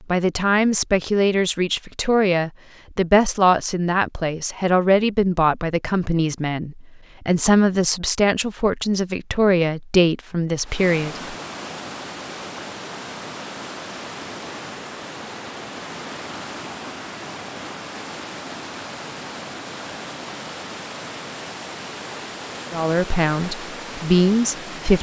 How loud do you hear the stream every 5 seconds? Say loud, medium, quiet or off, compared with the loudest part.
off, off, loud, loud, loud.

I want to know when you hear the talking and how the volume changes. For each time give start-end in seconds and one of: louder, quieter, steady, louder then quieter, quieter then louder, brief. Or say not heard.
0.1-11.3 steady
22.7-24.9 brief.